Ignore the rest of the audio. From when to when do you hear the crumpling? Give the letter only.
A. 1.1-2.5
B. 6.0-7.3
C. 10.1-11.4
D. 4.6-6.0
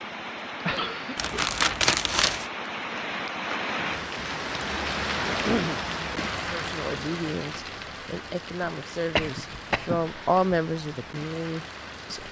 A.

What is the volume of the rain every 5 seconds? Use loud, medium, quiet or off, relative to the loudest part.
loud, loud, medium.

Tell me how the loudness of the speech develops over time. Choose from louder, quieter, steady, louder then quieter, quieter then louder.
louder then quieter.